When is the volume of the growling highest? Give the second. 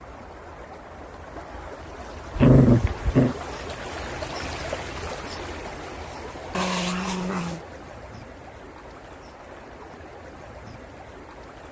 3 s.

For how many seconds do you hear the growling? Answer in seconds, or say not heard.
2 s.